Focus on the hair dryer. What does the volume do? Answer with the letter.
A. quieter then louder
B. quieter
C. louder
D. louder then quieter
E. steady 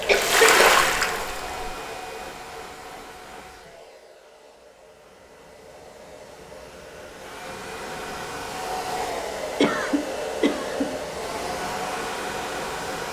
A.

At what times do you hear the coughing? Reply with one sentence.
The coughing can be heard from 0.1 to 0.8 s and from 9.1 to 10.9 s.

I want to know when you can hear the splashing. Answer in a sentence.
The splashing can be heard from 0.0 to 1.4 s.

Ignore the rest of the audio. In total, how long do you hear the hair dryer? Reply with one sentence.
The hair dryer can be heard for 13 seconds in total.